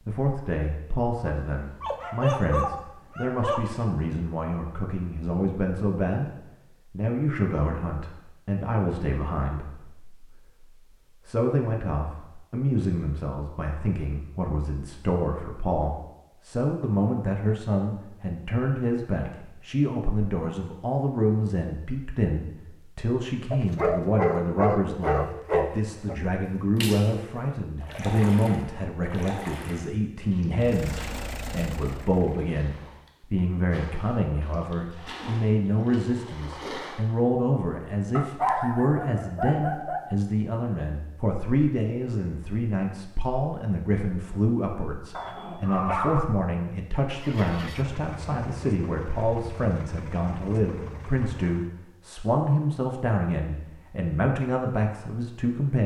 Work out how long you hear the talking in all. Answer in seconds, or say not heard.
55 s.